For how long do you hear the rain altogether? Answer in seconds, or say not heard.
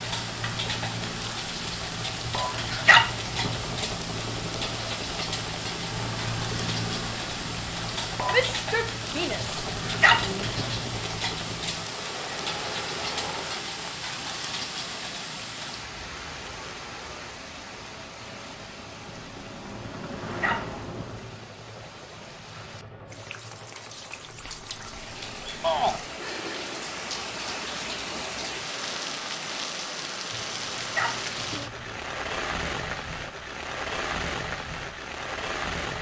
36 s.